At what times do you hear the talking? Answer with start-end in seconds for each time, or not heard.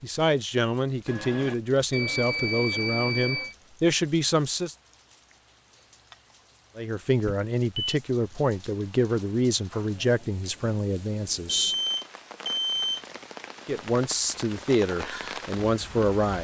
0.0-4.8, 6.8-11.8, 13.7-16.3.